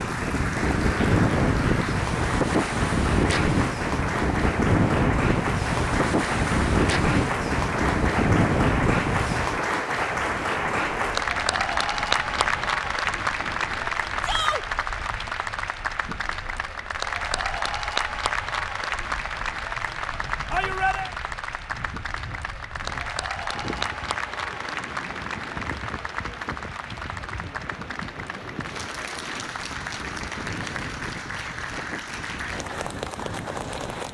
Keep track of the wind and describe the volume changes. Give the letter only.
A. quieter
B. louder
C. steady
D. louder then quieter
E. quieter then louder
E.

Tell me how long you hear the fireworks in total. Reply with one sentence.
You can't hear the fireworks here.